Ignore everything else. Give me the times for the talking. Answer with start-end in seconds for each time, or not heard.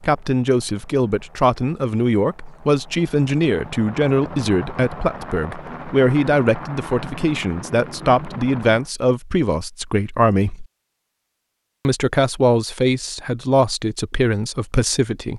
0.0-10.7, 11.8-15.3.